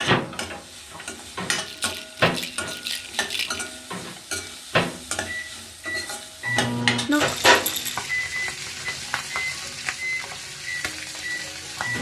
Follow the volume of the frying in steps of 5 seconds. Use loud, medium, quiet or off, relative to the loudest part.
medium, loud, medium.